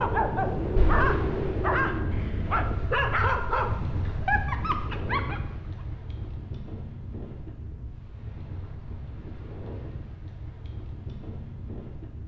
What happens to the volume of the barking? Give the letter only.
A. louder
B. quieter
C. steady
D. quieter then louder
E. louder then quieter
C.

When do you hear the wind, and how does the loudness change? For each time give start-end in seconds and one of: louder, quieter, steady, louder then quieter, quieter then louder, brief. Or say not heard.
0.0-12.2 quieter.